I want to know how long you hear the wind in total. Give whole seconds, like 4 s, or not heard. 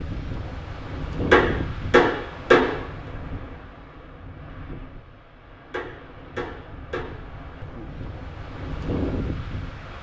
10 s.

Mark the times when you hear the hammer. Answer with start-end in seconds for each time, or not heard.
1.3-2.8, 5.7-7.2.